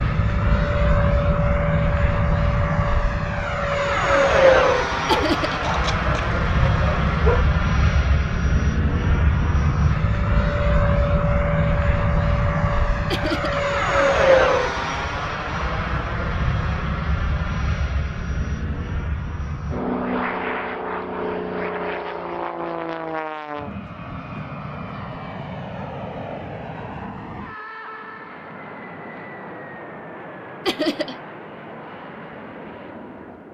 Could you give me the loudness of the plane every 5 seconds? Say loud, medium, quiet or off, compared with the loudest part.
loud, loud, loud, medium, medium, quiet, quiet.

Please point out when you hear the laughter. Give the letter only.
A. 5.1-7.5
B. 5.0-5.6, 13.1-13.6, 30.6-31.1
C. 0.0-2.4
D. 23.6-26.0
B.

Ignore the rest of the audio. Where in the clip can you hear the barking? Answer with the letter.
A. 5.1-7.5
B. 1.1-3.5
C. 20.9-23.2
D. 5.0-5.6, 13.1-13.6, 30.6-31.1
A.